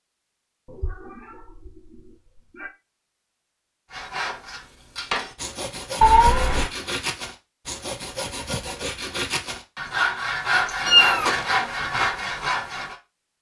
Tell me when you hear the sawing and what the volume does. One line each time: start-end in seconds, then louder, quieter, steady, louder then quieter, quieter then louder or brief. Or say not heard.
3.9-12.9 louder.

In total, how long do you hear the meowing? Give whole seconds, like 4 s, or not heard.
3 s.